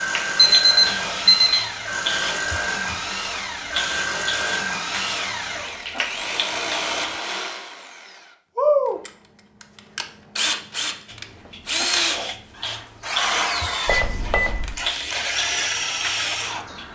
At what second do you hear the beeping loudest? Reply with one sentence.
The volume of the beeping peaks at 1 second.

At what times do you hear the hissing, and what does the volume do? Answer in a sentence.
You can hear the hissing from 0.1 to 7.2 s, at a steady volume; and from 11.1 to 16.9 s, getting quieter then louder.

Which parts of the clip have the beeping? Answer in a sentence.
The beeping can be heard from 0.3 to 1.6 s and from 13.8 to 14.8 s.